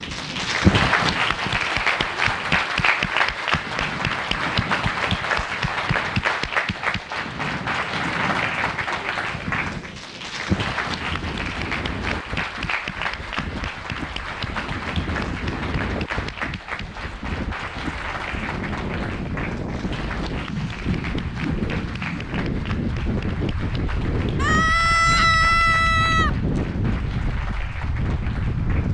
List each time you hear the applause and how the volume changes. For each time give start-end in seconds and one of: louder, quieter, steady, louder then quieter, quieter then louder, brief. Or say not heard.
0.0-28.9 quieter.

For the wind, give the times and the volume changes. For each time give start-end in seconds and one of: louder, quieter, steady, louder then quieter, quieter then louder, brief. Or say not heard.
0.0-28.9 louder.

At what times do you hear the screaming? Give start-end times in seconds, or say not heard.
24.4-26.3.